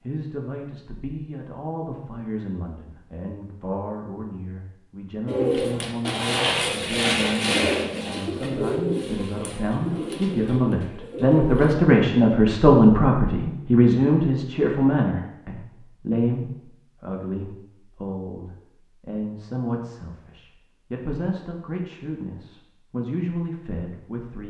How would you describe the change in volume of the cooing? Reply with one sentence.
The loudness of the cooing goes down.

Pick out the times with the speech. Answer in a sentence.
The speech can be heard from 0.0 to 24.4 s.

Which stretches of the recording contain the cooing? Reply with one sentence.
You can hear the cooing from 5.2 to 11.8 s.